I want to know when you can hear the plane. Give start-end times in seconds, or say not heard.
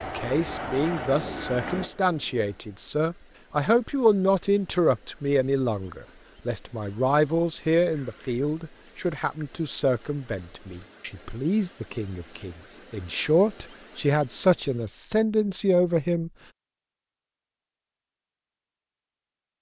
0.0-2.8.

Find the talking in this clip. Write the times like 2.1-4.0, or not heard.
0.0-16.3.